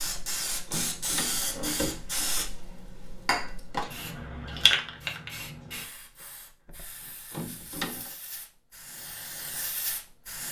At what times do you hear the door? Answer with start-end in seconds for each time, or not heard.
0.1-2.5, 6.7-8.2.